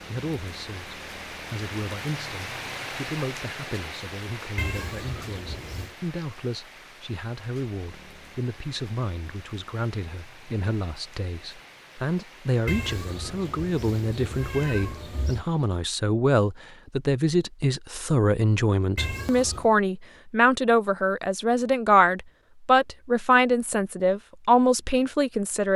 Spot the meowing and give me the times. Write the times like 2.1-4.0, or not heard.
4.5-6.0, 12.7-15.4, 18.9-19.7.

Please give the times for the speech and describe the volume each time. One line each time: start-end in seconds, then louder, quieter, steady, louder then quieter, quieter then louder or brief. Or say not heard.
0.0-25.7 louder.